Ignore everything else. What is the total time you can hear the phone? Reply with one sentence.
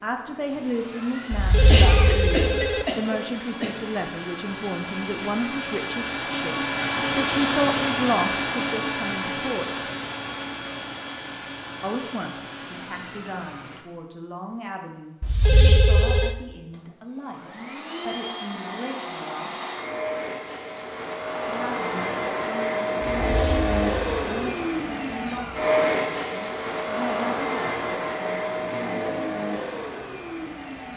The phone can be heard for 4 seconds in total.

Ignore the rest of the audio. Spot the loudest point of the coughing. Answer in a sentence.
The volume of the coughing peaks at 2 seconds.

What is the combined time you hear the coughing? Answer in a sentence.
You can hear the coughing for 2 seconds altogether.